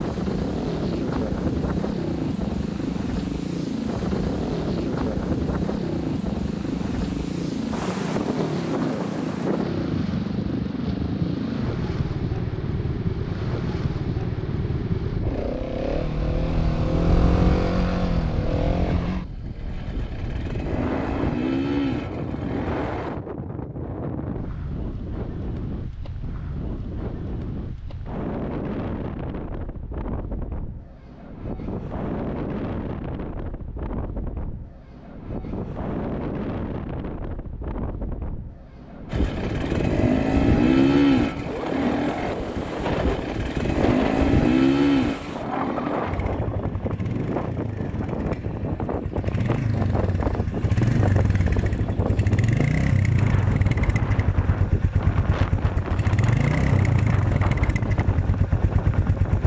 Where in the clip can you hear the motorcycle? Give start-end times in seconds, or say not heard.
0.0-23.2, 39.1-59.4.